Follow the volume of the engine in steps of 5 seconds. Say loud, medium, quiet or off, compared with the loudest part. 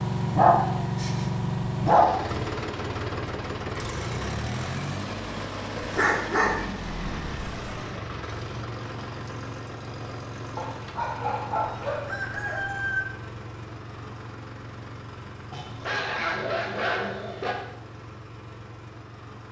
loud, medium, medium, quiet.